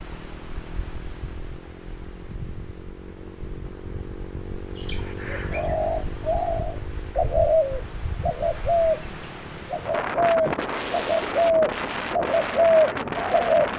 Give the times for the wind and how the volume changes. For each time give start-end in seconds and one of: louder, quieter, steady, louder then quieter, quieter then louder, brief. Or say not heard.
0.0-13.7 louder.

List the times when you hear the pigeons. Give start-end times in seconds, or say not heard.
4.8-13.7.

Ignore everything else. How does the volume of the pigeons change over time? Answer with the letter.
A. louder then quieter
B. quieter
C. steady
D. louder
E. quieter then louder
D.